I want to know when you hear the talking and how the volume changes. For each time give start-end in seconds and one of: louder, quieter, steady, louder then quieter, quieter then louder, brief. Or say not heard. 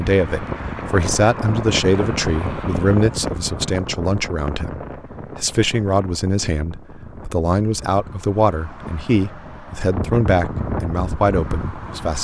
0.0-12.1 steady.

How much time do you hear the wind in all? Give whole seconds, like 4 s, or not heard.
12 s.